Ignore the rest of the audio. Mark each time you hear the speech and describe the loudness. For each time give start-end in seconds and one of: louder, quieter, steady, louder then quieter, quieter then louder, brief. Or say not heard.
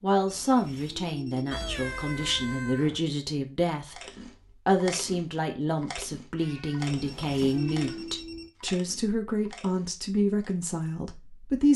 0.0-11.7 steady.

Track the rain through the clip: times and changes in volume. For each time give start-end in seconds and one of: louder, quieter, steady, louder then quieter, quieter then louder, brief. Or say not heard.
not heard.